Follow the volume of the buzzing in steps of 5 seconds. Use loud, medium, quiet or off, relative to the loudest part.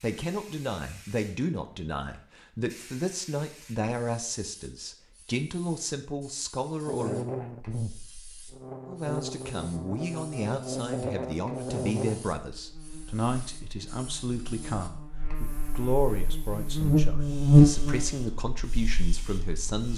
off, quiet, quiet, loud.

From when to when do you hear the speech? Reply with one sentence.
The speech can be heard from 0.0 to 7.2 s and from 8.8 to 19.9 s.